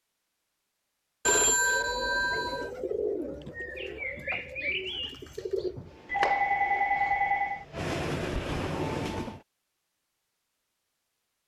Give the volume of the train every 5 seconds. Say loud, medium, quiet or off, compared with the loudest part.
quiet, loud, off.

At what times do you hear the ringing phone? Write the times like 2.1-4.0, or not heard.
1.2-2.7, 6.1-7.7.